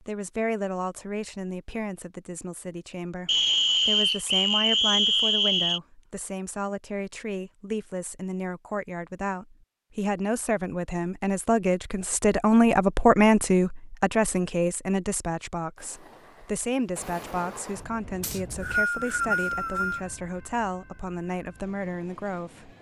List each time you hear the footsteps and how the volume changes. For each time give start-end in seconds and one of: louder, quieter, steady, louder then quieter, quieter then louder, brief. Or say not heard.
not heard.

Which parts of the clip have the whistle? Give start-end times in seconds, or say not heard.
3.2-5.8, 18.2-20.0.